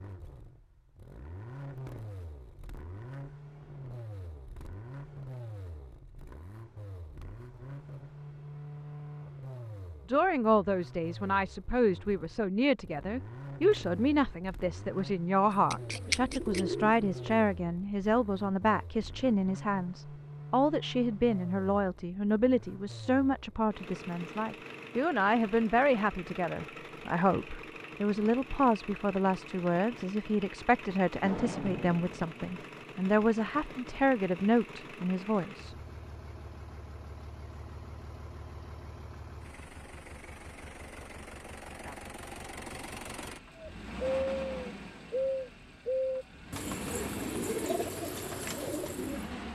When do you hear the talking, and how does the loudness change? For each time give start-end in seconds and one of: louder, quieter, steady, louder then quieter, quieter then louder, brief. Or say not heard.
10.1-35.8 steady.